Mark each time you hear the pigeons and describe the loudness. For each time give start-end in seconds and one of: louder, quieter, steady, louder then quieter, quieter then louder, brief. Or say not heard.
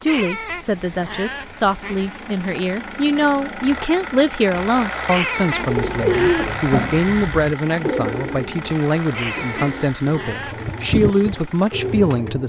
5.6-12.4 quieter then louder.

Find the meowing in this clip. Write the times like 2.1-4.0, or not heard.
0.1-2.2, 5.0-6.6, 9.1-10.7.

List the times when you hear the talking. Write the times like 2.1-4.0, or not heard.
0.0-12.4.